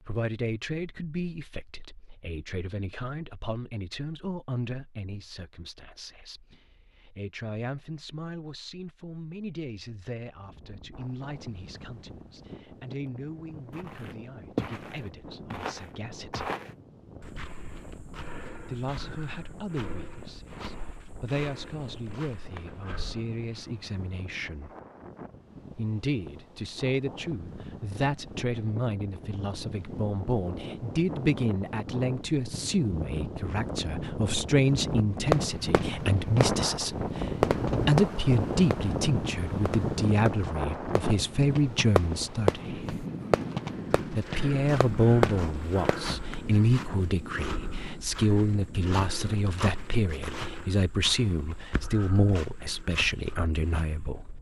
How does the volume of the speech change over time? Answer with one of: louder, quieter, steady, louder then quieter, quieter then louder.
louder.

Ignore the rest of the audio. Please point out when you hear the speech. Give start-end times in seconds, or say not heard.
0.1-16.6, 18.6-24.7, 25.8-43.0, 44.1-54.3.